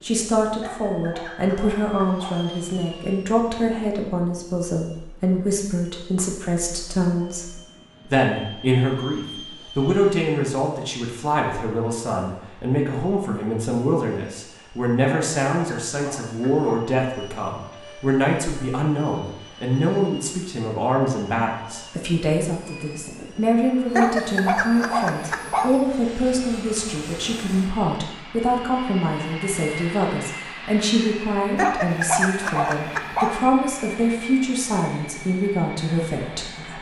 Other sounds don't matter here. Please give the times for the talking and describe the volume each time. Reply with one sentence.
The talking can be heard from 0.0 to 36.7 s, at a steady volume.